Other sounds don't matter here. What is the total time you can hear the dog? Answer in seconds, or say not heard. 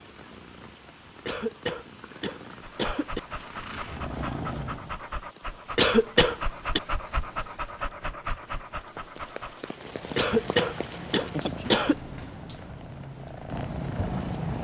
7 s.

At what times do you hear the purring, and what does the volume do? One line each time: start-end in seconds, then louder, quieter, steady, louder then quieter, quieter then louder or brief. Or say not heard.
0.0-5.0 louder
9.7-14.5 louder.